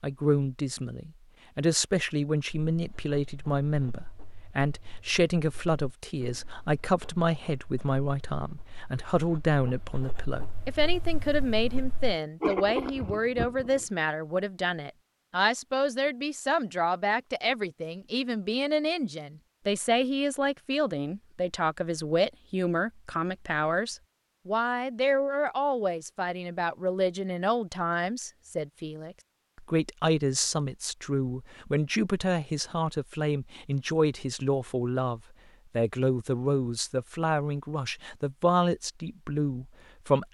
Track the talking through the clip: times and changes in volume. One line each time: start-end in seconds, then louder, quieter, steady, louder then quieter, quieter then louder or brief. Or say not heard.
0.0-40.3 steady.